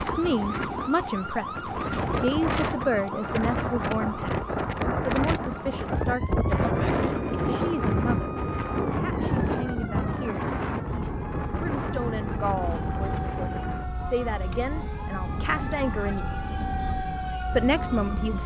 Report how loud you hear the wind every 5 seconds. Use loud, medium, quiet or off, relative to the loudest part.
loud, loud, medium, medium.